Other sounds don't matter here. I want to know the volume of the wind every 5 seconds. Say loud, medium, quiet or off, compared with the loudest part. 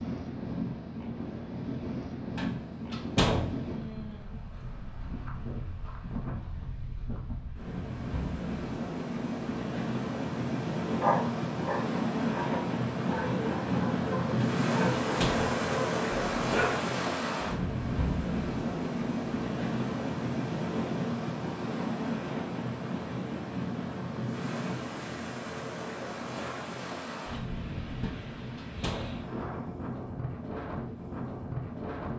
medium, medium, loud, loud, loud, medium, medium.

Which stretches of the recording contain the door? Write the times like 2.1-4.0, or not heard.
2.4-3.5, 14.4-15.6, 28.0-29.2.